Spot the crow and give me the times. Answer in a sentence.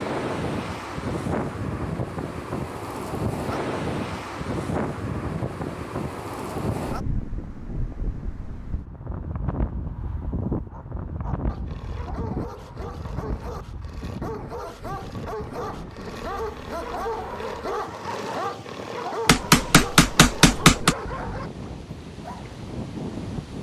You can't hear the crow here.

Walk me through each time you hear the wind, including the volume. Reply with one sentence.
The wind can be heard from 0.0 to 23.5 s, getting quieter.